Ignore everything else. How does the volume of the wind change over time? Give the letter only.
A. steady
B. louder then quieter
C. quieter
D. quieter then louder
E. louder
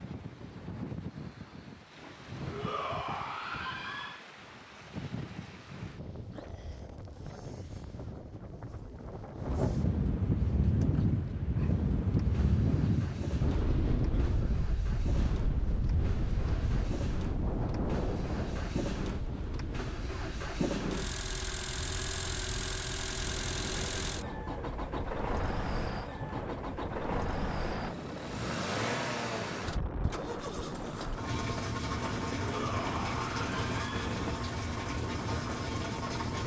B.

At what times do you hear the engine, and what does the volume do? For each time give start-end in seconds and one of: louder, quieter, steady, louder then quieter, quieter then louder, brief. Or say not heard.
10.8-36.4 louder.